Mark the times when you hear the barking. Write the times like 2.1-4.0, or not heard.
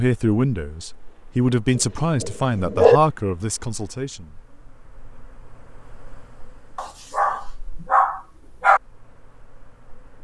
1.8-3.0, 6.8-8.8.